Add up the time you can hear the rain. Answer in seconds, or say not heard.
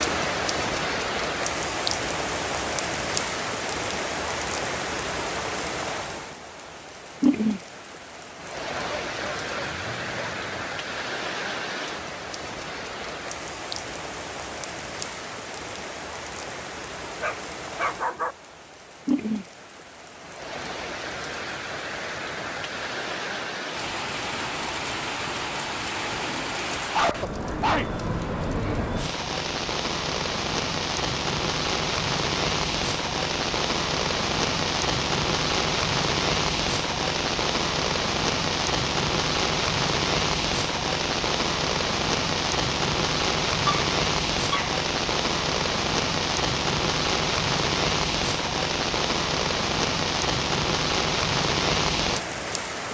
53 s.